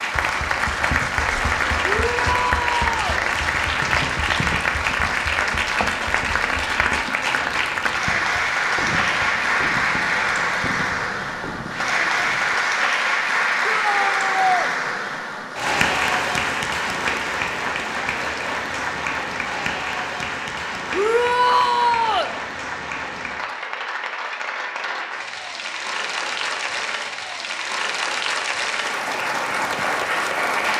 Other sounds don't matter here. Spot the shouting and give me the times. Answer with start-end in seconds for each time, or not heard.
1.8-3.2, 13.7-14.7, 20.9-22.4.